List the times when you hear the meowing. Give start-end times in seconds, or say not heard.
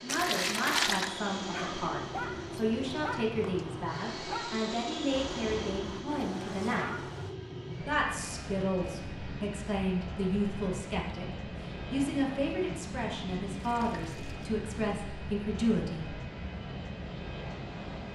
not heard.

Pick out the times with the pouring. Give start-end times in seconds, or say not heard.
0.1-1.1, 13.6-14.5.